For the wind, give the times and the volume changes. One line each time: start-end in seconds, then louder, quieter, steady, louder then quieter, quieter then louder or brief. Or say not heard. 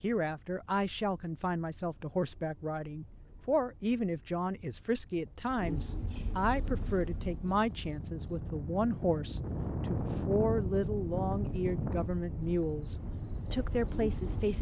6.5-14.5 louder then quieter.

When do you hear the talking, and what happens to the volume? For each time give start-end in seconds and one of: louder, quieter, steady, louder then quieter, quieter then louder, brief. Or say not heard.
0.0-14.5 steady.